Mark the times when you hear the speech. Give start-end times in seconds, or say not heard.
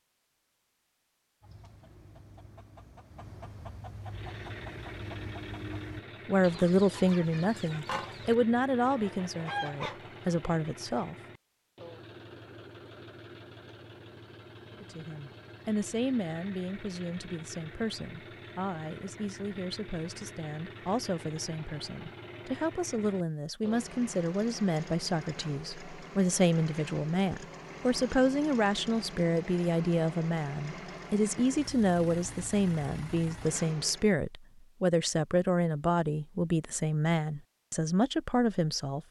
6.2-11.2, 14.8-39.0.